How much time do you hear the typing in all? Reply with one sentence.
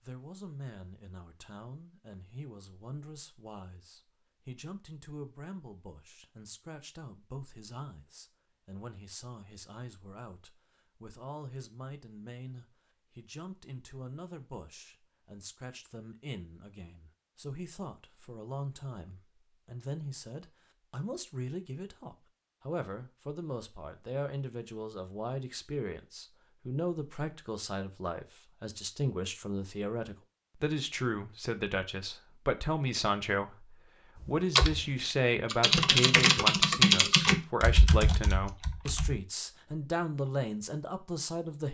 The typing can be heard for 5 seconds in total.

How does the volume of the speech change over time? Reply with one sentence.
The volume of the speech goes up.